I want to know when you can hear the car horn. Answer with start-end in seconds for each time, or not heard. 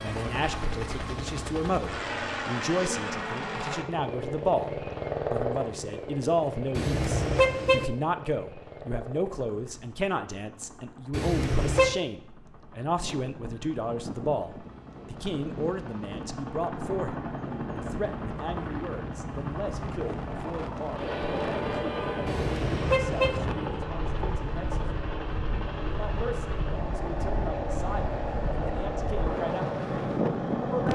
6.8-7.8, 11.1-11.9, 22.2-23.4.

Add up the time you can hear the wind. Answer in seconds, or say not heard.
18 s.